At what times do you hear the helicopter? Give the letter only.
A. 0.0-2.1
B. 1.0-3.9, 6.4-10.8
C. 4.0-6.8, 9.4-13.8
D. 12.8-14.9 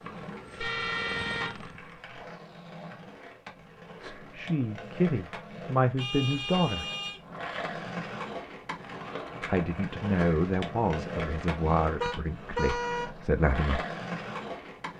A.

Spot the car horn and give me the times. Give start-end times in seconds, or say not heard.
0.6-2.2, 6.0-7.2, 12.0-13.1.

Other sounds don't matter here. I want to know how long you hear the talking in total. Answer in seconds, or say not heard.
7 s.